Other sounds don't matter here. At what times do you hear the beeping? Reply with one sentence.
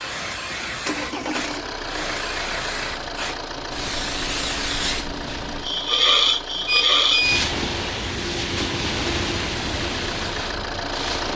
You can hear the beeping from 6.7 to 7.4 s.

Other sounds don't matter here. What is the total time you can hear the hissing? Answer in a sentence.
You can hear the hissing for 11 seconds altogether.